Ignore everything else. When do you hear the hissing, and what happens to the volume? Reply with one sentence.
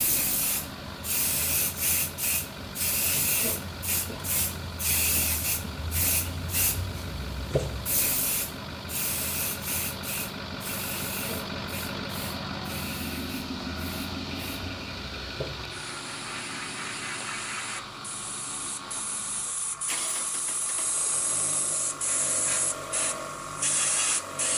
You can hear the hissing from 0.0 to 24.5 s, getting quieter then louder.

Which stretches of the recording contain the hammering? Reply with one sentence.
You can't hear the hammering here.